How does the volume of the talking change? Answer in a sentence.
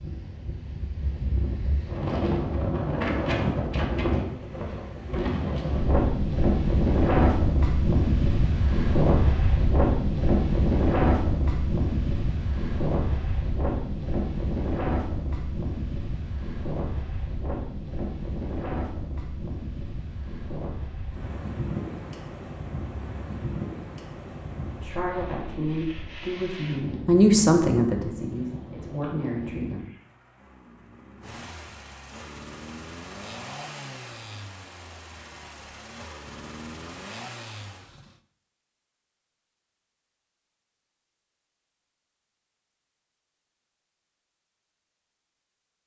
The loudness of the talking goes up, then down.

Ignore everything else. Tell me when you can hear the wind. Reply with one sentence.
The wind can be heard from 0.0 to 29.8 s.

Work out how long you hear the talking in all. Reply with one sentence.
The talking can be heard for 5 seconds in total.